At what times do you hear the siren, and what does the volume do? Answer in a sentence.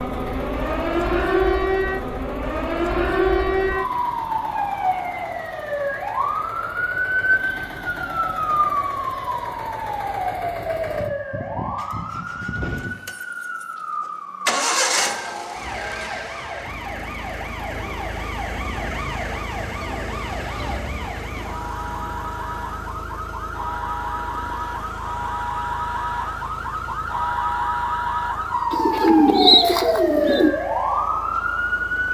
The siren can be heard from 0.0 to 32.0 s, getting quieter then louder.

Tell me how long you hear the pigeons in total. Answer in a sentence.
You can hear the pigeons for 2 seconds altogether.